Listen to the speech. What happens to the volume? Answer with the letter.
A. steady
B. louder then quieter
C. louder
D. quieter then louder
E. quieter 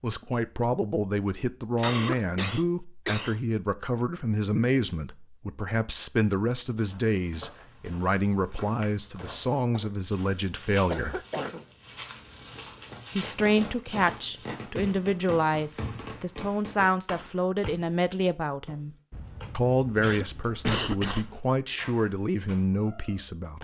A.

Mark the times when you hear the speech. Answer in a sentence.
The speech can be heard from 0.0 to 11.2 s, from 13.2 to 18.9 s and from 19.6 to 23.5 s.